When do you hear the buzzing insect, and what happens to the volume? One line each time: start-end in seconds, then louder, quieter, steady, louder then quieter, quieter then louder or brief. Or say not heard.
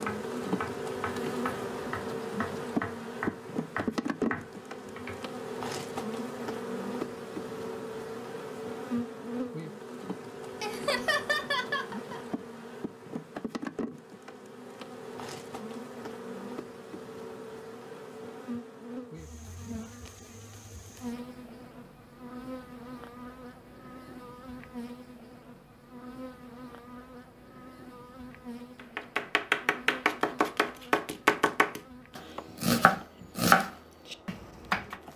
0.0-35.1 quieter.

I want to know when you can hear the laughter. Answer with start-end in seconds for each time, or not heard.
10.6-12.3.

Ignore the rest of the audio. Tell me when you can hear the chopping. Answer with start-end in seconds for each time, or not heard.
0.0-5.2, 28.9-35.0.